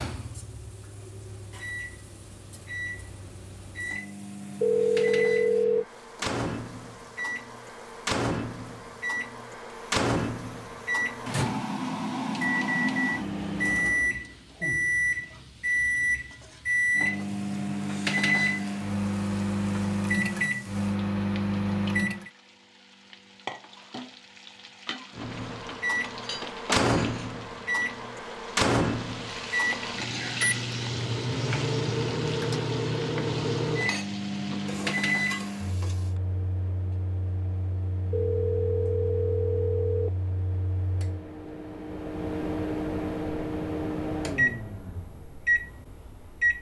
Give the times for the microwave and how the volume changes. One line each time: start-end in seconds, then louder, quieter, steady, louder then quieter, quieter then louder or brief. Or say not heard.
0.0-22.3 louder
25.1-46.5 quieter then louder.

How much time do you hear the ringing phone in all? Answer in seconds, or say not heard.
3 s.